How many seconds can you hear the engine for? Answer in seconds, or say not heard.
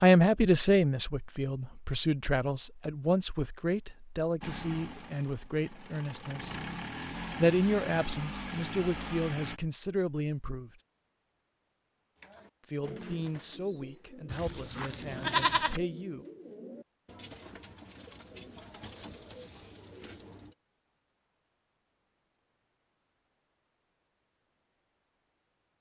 5 s.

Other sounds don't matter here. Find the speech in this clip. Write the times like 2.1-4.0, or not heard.
0.0-10.7, 12.7-16.2.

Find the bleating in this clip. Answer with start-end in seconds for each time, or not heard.
14.3-15.8.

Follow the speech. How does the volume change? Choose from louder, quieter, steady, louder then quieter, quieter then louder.
quieter.